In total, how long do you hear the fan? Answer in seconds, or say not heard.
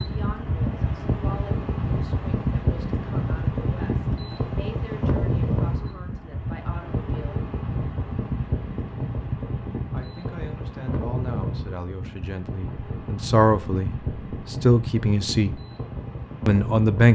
17 s.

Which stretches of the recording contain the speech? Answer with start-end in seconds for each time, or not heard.
0.0-7.4, 9.9-15.6, 16.4-17.1.